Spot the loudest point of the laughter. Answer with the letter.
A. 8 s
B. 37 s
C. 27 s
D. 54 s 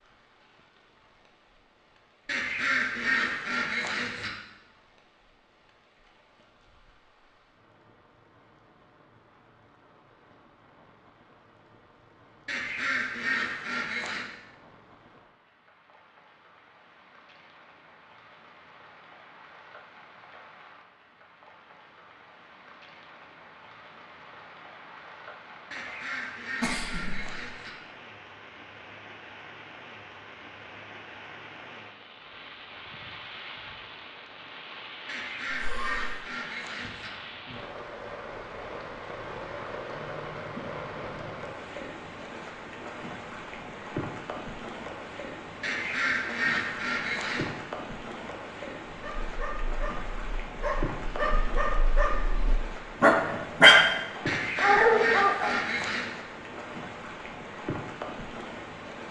C.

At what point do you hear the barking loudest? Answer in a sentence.
The volume of the barking peaks at 54 seconds.